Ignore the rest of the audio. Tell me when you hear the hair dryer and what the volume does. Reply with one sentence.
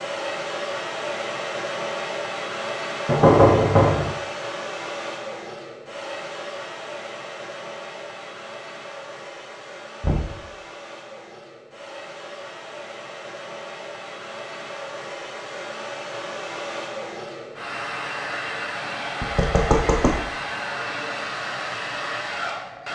The hair dryer can be heard from 0.0 to 22.8 s, getting quieter then louder.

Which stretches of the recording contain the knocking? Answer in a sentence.
You can hear the knocking from 3.0 to 4.1 s, from 10.0 to 10.4 s and from 19.2 to 20.1 s.